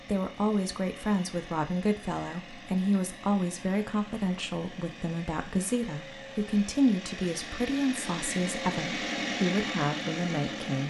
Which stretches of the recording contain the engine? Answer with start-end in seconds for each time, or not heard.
0.0-10.8.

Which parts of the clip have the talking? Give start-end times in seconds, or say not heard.
0.0-10.8.